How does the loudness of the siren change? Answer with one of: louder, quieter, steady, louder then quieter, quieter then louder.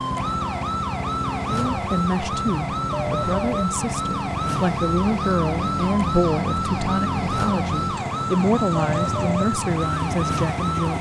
steady.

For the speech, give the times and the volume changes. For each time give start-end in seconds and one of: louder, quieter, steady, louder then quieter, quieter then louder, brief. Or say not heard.
1.4-10.9 steady.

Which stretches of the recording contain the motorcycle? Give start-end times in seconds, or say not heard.
0.0-10.9.